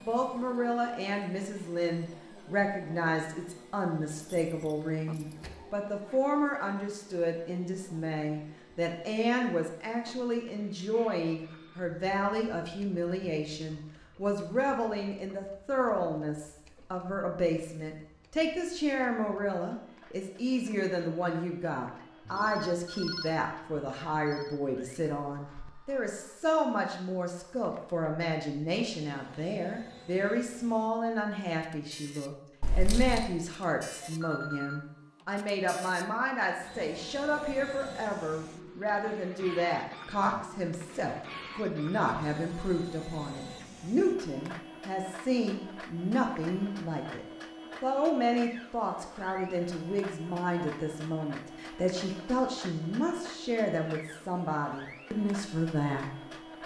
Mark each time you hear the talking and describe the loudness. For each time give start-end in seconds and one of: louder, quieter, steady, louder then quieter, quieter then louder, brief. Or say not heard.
0.0-56.1 steady.